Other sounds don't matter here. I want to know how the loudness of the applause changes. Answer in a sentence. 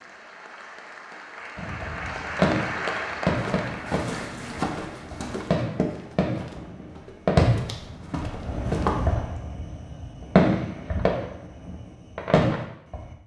The volume of the applause goes up, then down.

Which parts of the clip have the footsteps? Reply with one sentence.
You can hear the footsteps from 3.4 to 9.2 s.